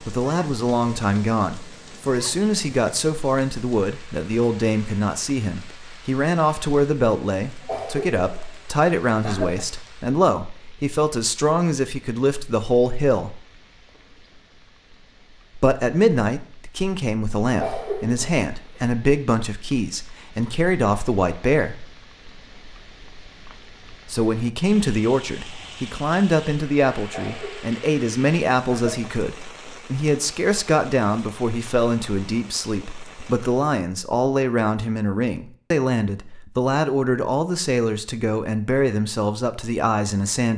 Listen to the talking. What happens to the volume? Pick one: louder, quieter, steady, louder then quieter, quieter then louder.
steady.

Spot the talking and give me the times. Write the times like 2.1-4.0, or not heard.
0.0-13.4, 15.6-21.9, 24.1-40.5.